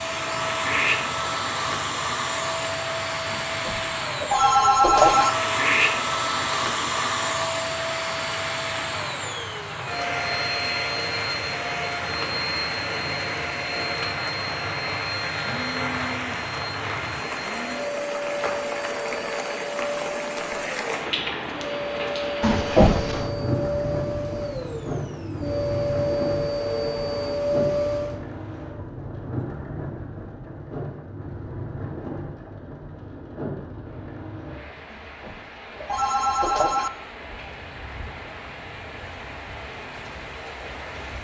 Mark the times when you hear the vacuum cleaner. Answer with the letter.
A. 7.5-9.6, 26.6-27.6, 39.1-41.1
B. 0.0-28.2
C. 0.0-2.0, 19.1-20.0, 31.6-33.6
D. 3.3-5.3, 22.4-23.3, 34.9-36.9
B.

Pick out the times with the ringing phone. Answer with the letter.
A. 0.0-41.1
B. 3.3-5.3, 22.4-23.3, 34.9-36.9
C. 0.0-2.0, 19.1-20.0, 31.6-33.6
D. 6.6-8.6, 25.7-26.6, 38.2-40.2
B.